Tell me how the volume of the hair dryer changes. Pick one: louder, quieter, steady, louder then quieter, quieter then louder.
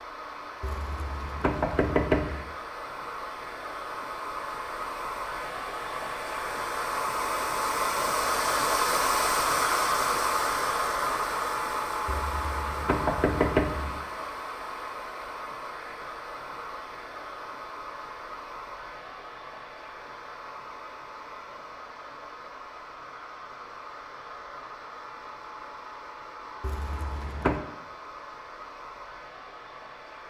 louder then quieter.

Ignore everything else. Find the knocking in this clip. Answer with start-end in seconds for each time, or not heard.
0.6-2.5, 12.1-14.0, 26.6-27.6.